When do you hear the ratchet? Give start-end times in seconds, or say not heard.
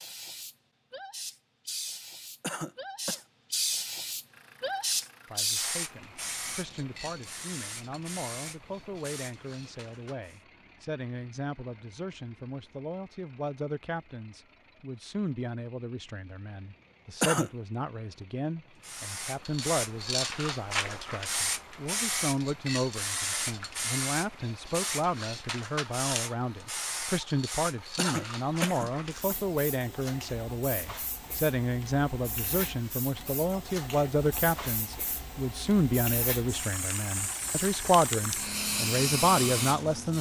not heard.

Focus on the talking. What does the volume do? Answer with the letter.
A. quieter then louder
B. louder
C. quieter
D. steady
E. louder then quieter
B.